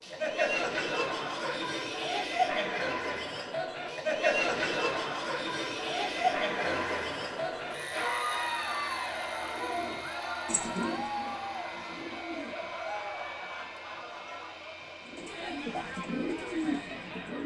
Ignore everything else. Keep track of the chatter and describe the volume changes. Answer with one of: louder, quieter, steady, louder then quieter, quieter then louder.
quieter.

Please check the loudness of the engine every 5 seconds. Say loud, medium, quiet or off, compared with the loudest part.
loud, loud, medium, medium.